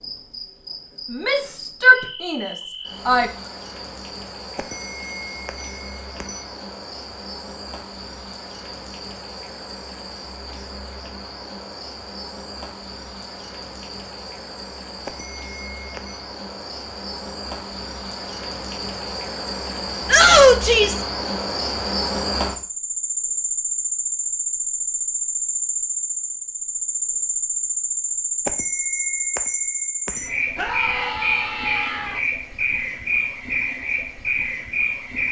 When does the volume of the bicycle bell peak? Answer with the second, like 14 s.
29 s.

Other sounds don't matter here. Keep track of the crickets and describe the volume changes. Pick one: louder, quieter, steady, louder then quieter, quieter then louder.
louder.